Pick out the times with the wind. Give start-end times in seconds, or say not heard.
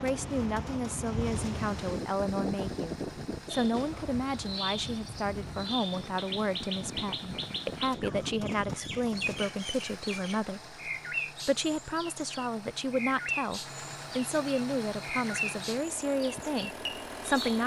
0.0-9.5.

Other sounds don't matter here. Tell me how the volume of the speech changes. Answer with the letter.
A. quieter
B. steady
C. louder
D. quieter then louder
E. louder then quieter
B.